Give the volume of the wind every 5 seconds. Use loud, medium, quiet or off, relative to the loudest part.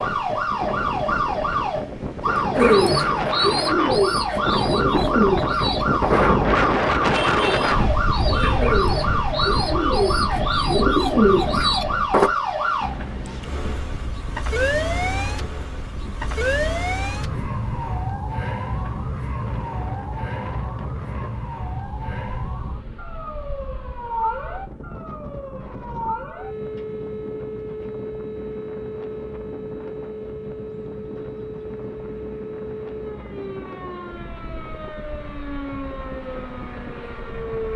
medium, loud, medium, quiet, quiet, quiet, quiet, quiet.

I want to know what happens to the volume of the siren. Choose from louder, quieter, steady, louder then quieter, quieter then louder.
quieter.